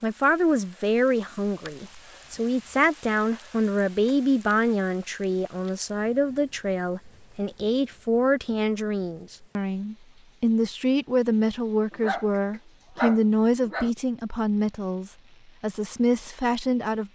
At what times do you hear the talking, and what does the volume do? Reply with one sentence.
The talking can be heard from 0.0 to 17.1 s, at a steady volume.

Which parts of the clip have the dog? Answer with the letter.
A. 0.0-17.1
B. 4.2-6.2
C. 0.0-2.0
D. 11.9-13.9
D.